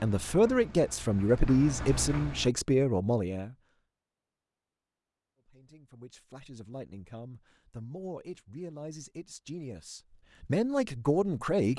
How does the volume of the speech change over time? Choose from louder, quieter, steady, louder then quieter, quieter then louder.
quieter then louder.